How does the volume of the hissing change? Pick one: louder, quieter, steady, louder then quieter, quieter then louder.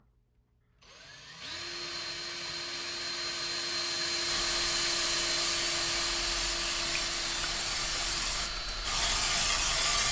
louder.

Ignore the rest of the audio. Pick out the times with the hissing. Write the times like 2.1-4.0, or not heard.
4.2-10.0.